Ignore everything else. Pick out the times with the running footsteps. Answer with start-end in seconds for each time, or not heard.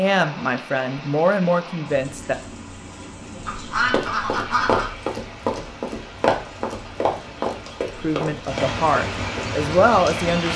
3.9-9.5.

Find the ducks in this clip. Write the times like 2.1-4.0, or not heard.
3.5-4.9.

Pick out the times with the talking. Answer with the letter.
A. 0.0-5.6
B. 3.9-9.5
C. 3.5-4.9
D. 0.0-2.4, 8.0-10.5
D.